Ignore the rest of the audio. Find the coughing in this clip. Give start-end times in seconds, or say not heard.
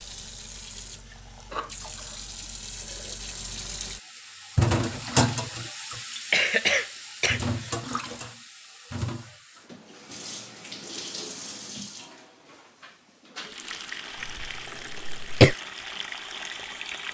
1.5-2.2, 6.3-7.8, 14.2-15.6.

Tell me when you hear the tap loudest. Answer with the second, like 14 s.
5 s.